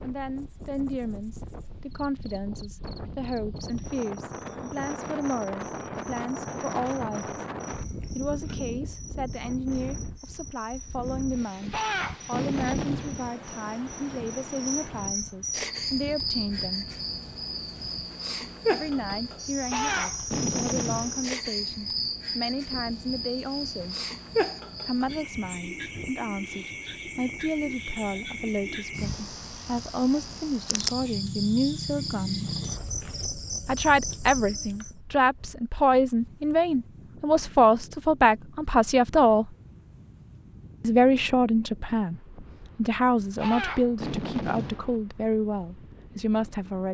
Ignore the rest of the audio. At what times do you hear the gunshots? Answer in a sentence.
You can hear the gunshots from 11.7 to 13.3 s, from 19.7 to 21.3 s and from 43.4 to 45.0 s.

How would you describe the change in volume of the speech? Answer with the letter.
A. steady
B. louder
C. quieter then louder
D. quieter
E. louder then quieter
B.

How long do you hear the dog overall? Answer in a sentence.
You can't hear the dog here.